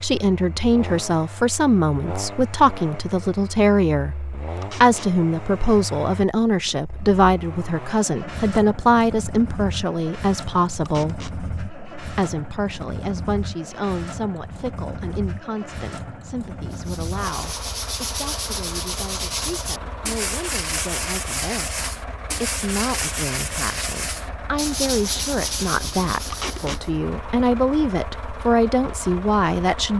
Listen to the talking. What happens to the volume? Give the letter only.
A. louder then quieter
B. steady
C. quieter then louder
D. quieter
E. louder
C.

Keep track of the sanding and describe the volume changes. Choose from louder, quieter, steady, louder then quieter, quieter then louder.
steady.